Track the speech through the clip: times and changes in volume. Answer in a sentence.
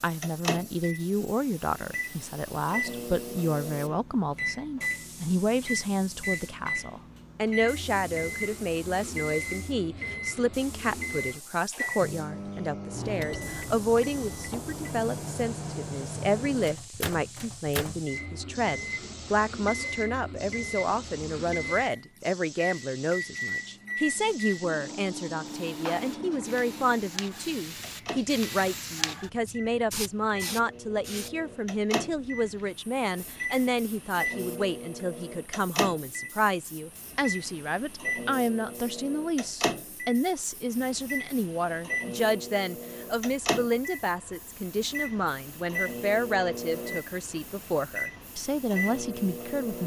You can hear the speech from 0.0 to 49.8 s, at a steady volume.